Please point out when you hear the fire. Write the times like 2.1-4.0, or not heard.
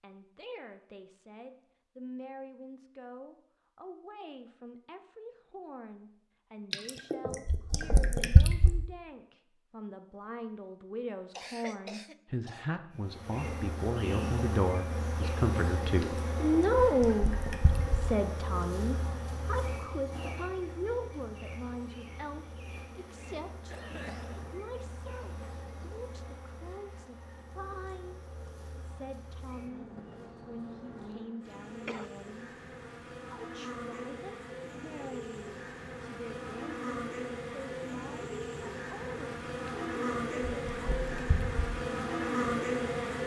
not heard.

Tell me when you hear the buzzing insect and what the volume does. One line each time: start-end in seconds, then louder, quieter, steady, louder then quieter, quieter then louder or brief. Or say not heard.
12.9-43.2 quieter then louder.